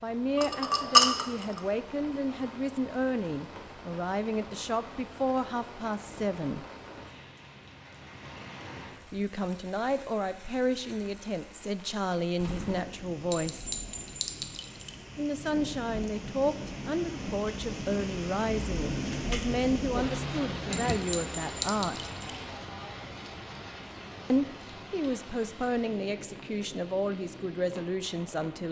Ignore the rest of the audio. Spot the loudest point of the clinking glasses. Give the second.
1 s.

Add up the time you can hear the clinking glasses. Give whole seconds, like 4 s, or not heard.
5 s.